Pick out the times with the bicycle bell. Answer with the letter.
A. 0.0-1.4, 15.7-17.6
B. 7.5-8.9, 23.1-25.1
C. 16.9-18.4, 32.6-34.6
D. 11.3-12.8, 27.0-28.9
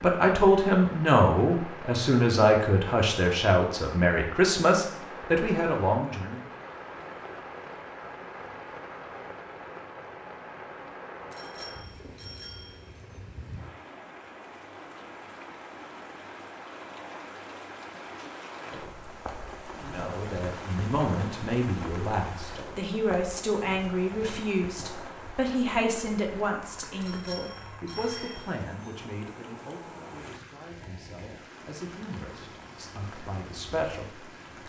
D.